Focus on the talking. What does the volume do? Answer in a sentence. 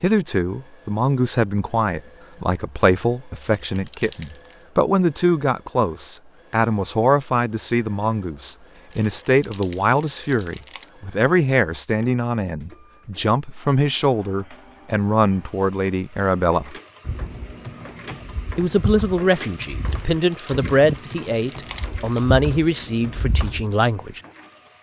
The volume of the talking stays about the same.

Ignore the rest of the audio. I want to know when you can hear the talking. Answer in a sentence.
You can hear the talking from 0.0 to 16.8 s and from 18.6 to 24.2 s.